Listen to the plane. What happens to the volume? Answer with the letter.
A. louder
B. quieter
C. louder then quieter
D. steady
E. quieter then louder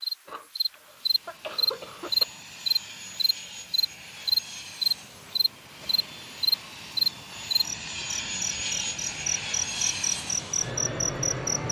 A.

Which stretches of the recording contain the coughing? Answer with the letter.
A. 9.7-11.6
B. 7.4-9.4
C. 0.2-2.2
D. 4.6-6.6
C.